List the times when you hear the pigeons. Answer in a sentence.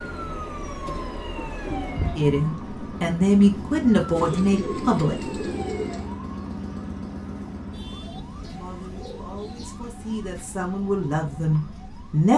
The pigeons can be heard from 0.8 to 2.3 s, from 4.2 to 6.1 s and from 8.4 to 10.4 s.